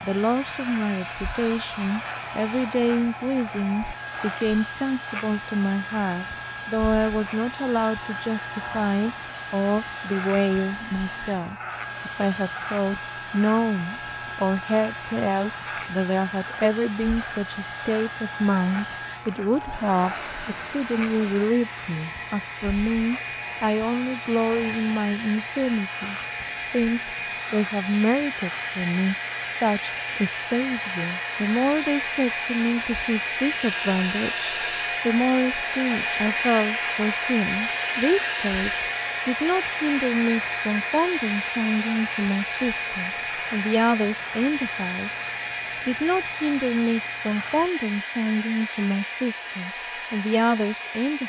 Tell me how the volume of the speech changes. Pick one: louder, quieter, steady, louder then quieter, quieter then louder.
steady.